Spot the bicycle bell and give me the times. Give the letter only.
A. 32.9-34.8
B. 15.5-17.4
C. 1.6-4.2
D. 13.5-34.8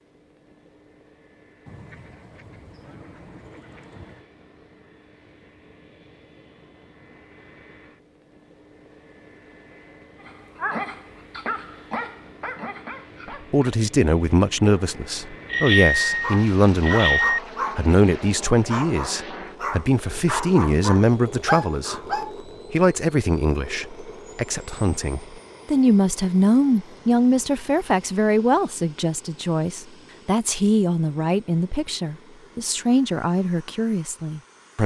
B.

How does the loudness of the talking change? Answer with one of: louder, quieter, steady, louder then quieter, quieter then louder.
steady.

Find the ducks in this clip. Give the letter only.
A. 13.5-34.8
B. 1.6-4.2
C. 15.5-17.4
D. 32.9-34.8
B.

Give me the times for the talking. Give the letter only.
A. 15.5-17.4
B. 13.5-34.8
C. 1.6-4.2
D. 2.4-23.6
B.